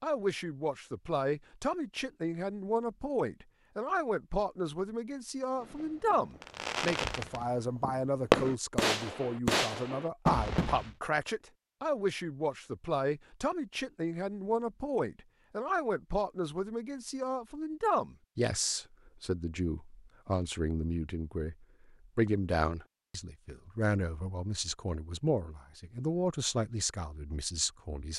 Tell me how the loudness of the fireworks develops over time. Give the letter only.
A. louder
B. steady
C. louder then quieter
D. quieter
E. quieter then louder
C.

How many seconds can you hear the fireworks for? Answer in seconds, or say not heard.
5 s.